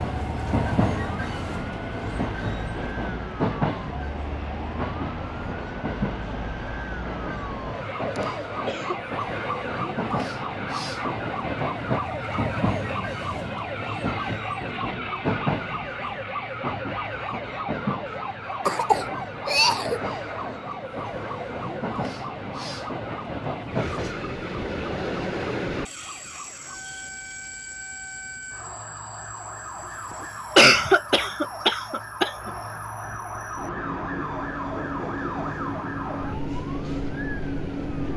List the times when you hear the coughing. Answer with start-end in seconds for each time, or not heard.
8.2-9.0, 18.6-20.0, 30.6-32.5.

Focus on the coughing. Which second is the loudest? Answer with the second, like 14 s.
31 s.